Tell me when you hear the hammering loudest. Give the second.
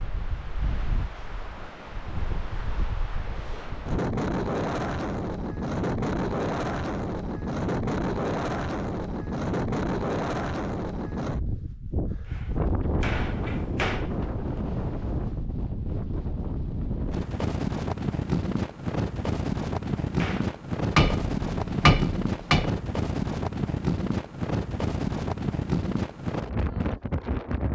22 s.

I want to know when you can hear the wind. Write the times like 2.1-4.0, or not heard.
0.0-27.7.